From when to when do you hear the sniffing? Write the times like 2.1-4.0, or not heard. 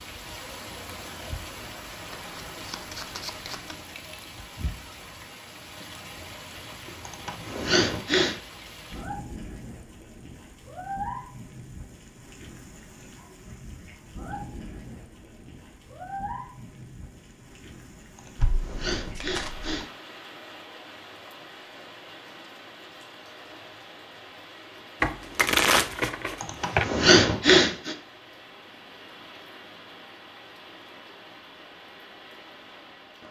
7.0-8.3, 18.1-19.9, 26.4-27.9.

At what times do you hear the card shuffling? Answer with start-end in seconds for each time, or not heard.
2.1-3.8, 18.4-19.8, 25.0-26.9.